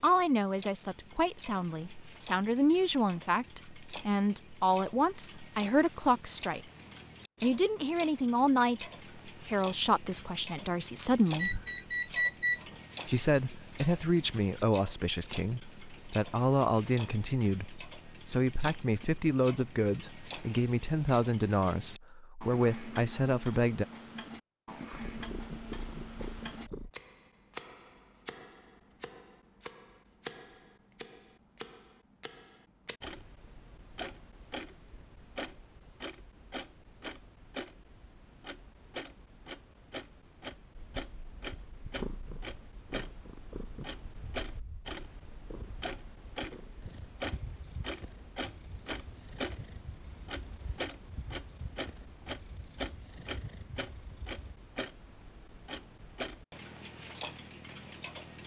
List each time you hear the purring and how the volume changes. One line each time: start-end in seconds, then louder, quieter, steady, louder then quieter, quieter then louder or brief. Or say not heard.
24.9-26.9 brief
40.8-54.5 quieter.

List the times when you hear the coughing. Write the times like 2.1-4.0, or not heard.
not heard.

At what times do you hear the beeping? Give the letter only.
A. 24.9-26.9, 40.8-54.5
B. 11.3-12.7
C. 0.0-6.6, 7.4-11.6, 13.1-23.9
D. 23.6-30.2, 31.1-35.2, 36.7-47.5
B.